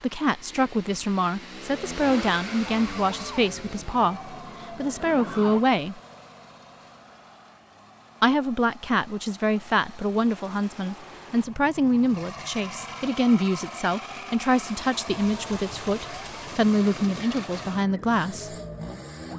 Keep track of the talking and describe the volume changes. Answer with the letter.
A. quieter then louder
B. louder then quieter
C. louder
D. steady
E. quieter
D.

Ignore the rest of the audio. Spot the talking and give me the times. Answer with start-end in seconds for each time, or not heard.
0.0-6.0, 8.2-18.6.